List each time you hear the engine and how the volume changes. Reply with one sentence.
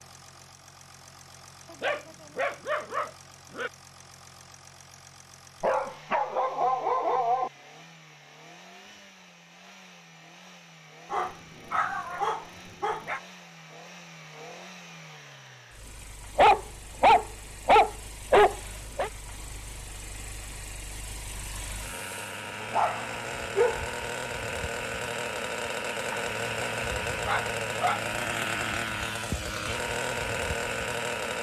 You can hear the engine from 0.0 to 31.3 s, getting louder.